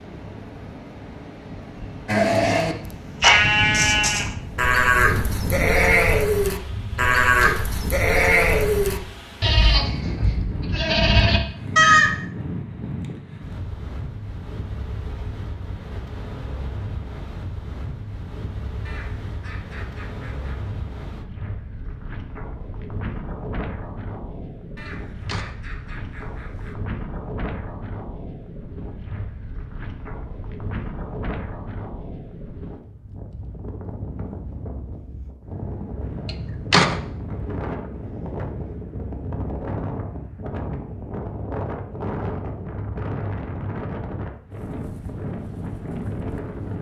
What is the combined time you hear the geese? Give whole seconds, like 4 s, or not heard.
4 s.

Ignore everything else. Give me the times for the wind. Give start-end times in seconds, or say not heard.
0.0-46.7.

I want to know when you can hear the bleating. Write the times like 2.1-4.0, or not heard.
2.0-12.1.